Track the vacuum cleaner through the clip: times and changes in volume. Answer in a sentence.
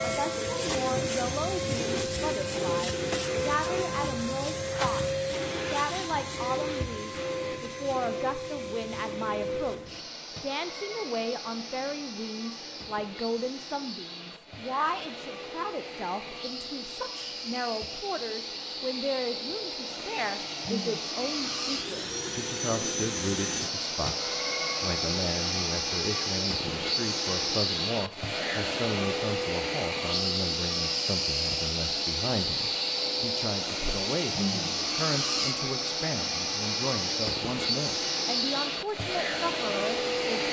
The vacuum cleaner can be heard from 0.0 to 40.4 s, getting quieter then louder.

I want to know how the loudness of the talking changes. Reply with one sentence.
The volume of the talking stays about the same.